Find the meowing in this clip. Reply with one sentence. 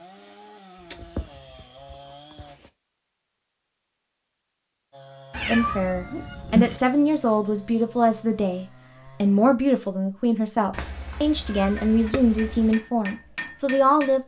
You can hear the meowing from 0.8 to 2.7 s, from 5.3 to 6.8 s and from 10.7 to 12.8 s.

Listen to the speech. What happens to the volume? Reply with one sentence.
The loudness of the speech stays about the same.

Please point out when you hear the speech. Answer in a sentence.
The speech can be heard from 5.5 to 14.2 s.